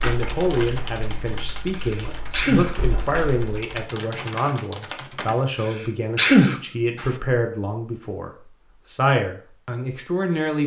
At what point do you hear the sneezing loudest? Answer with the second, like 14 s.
6 s.